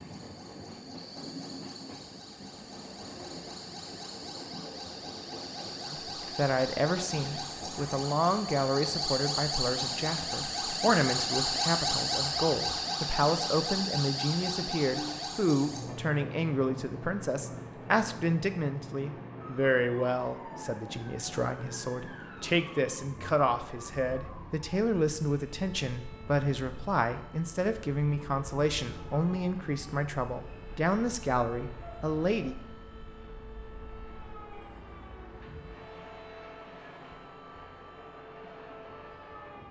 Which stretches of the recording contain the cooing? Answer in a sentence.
You can't hear the cooing here.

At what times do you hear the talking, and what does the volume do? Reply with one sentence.
The talking can be heard from 5.8 to 32.5 s, at a steady volume.